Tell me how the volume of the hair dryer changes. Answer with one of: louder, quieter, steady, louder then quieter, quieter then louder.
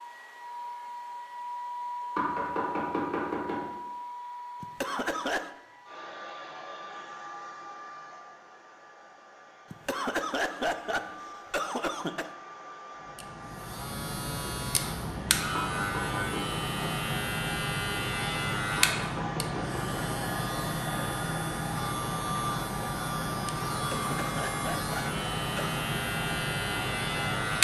quieter then louder.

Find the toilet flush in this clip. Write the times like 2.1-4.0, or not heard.
not heard.